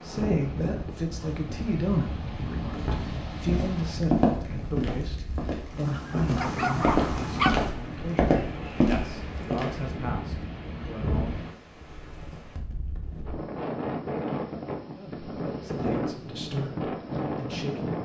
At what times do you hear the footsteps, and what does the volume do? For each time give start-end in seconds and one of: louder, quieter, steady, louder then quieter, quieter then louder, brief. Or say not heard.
2.7-9.8 quieter then louder.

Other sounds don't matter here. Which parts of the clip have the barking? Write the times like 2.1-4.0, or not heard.
6.3-7.7.